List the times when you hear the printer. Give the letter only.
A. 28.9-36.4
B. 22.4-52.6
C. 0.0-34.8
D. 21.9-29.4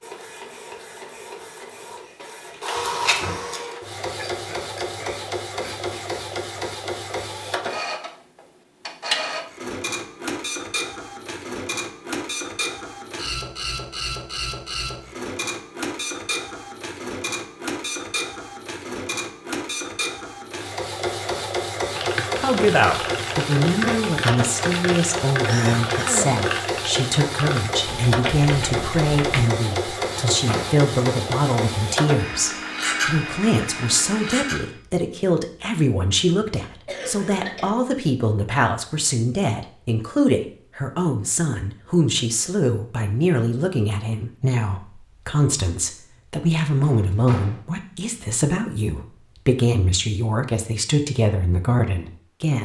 C.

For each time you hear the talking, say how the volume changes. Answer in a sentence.
You can hear the talking from 22.4 to 52.6 s, at a steady volume.